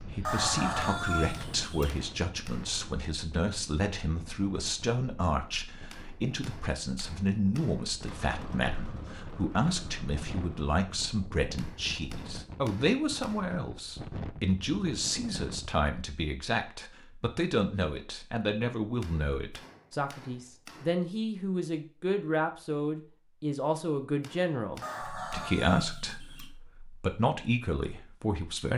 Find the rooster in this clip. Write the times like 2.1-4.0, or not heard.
0.2-1.9, 24.8-26.5.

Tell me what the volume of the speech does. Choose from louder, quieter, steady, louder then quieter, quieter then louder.
steady.